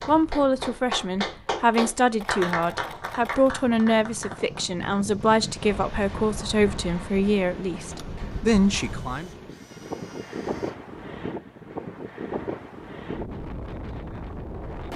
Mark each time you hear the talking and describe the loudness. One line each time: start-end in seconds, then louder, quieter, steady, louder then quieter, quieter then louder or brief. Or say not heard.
0.1-9.3 steady.